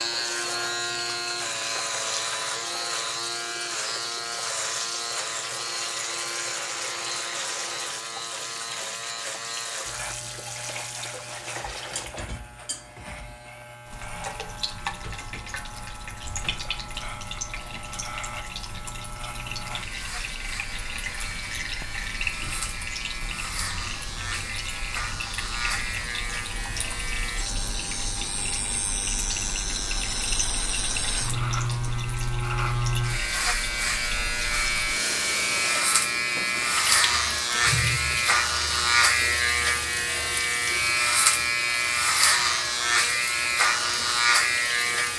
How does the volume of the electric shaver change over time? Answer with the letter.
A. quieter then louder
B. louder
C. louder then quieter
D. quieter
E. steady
A.